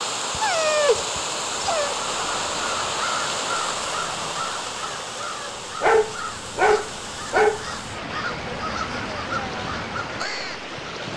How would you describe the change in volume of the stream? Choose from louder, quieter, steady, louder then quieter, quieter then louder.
quieter.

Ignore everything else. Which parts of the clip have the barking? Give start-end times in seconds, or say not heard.
0.3-1.9, 5.8-7.7.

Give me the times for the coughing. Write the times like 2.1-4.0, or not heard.
not heard.